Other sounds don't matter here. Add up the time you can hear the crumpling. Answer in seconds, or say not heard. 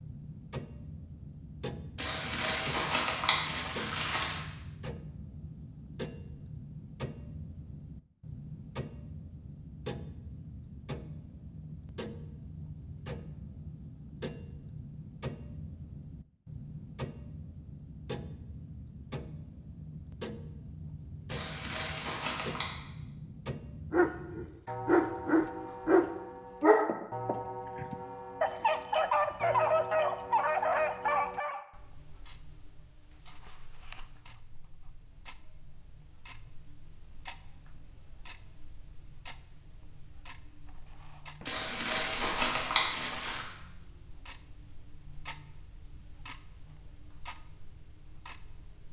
6 s.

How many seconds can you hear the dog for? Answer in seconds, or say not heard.
8 s.